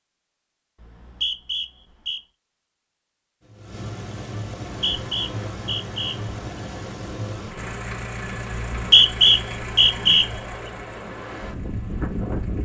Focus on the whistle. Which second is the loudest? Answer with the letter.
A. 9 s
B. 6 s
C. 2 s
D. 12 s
A.